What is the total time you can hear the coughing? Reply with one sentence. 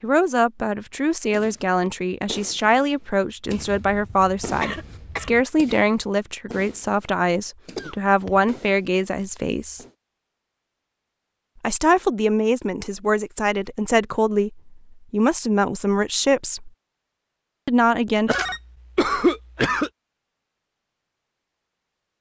You can hear the coughing for 4 seconds altogether.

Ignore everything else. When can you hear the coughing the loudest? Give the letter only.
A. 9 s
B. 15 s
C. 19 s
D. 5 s
C.